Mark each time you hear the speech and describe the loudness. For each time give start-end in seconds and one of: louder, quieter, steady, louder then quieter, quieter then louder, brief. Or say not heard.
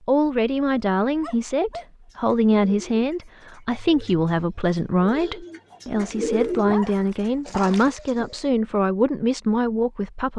0.1-10.3 steady.